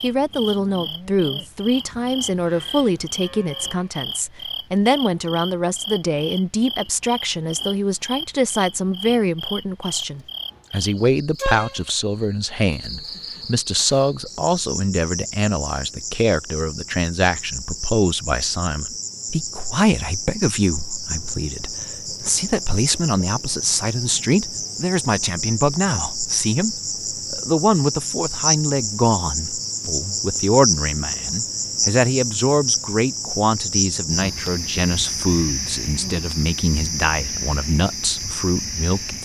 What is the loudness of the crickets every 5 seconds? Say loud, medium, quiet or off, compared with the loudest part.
medium, medium, medium, medium, medium, loud, loud, loud.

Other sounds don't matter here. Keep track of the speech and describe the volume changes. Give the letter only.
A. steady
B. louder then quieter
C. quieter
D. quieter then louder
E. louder
A.